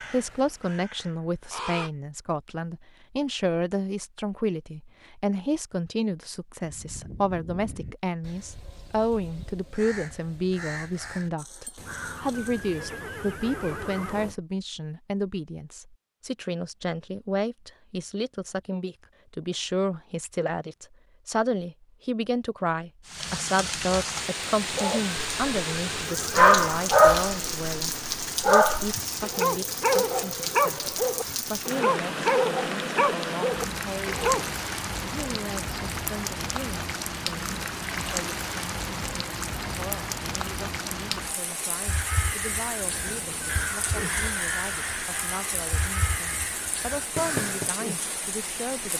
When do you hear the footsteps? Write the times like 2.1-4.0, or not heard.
not heard.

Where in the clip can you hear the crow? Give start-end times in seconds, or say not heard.
0.0-1.9, 6.6-12.7, 41.8-47.8.